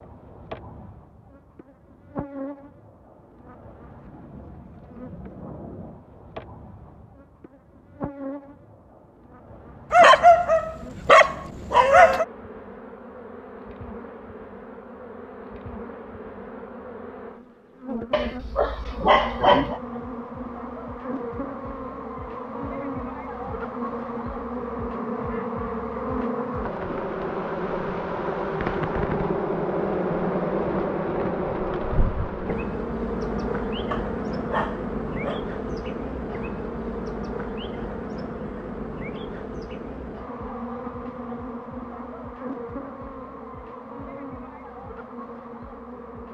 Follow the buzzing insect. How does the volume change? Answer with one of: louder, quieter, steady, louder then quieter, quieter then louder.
louder then quieter.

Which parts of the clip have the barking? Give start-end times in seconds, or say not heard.
9.9-12.2, 18.1-19.8, 33.9-35.4.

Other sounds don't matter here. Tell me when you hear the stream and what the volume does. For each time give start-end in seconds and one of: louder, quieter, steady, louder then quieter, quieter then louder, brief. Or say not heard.
not heard.